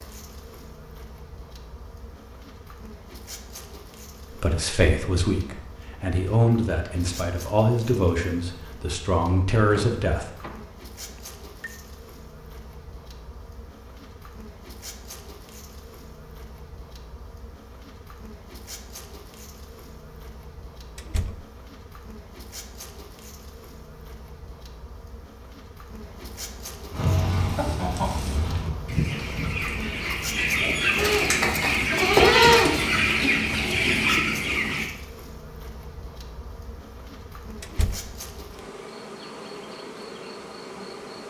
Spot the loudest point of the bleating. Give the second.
32 s.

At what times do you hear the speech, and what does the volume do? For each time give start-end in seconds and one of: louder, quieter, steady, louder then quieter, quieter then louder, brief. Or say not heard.
4.3-10.2 steady.